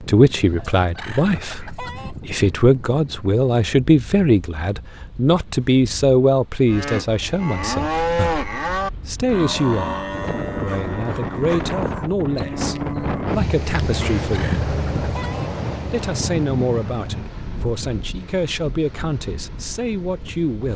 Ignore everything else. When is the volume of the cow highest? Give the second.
8 s.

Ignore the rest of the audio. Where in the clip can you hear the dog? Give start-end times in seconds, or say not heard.
10.2-12.1.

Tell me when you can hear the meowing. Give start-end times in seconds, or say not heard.
not heard.